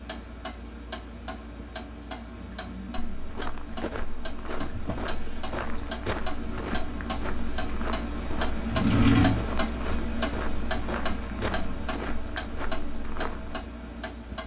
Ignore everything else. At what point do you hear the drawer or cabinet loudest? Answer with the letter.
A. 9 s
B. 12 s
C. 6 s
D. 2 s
A.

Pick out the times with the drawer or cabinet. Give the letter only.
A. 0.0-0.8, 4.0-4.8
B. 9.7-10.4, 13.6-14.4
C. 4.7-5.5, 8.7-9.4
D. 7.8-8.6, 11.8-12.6
C.